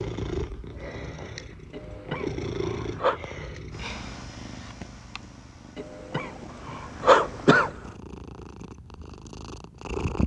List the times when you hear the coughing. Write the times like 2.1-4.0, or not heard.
1.7-3.2, 5.8-7.8.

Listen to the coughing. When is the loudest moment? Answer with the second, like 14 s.
7 s.